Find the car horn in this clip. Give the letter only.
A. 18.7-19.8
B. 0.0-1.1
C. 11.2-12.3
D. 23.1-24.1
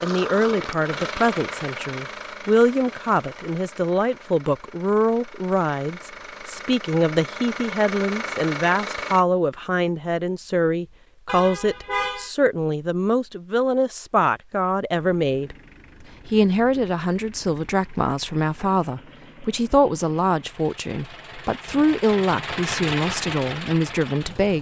C.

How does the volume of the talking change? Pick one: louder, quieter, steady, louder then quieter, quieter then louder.
steady.